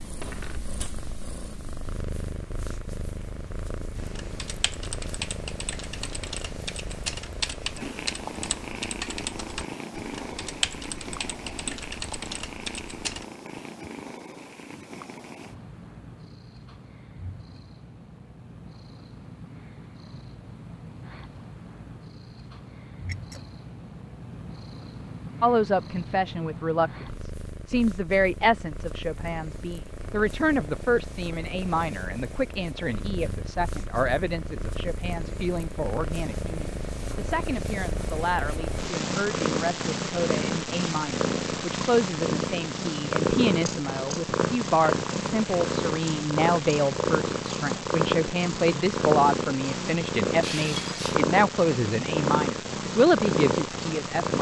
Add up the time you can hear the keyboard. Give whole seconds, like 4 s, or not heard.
9 s.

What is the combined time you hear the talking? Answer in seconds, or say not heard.
28 s.